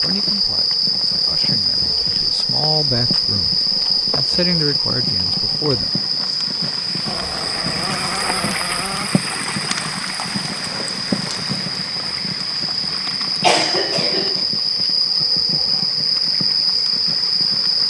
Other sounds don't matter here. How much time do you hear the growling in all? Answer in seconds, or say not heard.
2 s.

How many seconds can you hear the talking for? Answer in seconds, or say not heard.
6 s.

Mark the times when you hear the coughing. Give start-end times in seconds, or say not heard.
13.4-14.4.